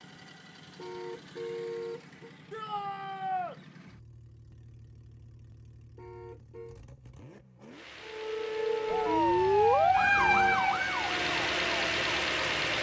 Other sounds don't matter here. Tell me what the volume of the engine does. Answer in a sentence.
The loudness of the engine goes up.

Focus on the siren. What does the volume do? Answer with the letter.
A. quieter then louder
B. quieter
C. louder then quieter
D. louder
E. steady
C.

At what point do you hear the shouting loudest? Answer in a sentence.
The loudest moment of the shouting is at 3 seconds.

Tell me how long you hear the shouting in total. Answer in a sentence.
The shouting can be heard for 2 seconds in total.